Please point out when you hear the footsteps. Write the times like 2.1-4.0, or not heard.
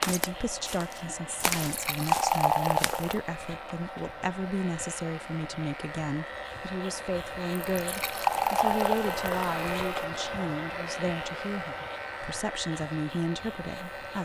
0.0-3.0.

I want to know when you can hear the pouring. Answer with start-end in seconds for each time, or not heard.
1.6-3.2, 7.8-10.1.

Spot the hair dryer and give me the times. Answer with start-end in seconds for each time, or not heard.
0.0-14.1.